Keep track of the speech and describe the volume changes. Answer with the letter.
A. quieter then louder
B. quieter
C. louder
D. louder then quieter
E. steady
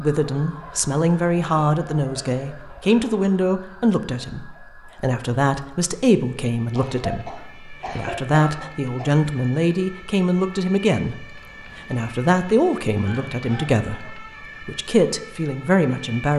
E.